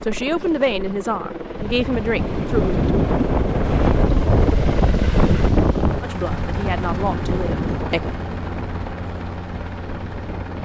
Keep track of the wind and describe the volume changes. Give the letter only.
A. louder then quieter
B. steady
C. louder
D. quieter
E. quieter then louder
A.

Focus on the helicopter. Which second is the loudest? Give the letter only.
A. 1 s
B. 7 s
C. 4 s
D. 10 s
C.